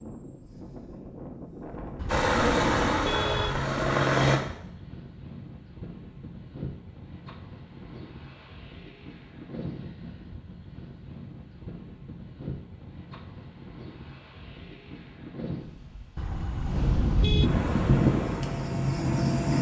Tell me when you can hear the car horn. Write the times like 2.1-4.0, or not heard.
1.9-3.6, 16.1-17.5.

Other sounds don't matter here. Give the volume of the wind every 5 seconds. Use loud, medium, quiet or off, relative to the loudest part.
quiet, quiet, quiet, loud.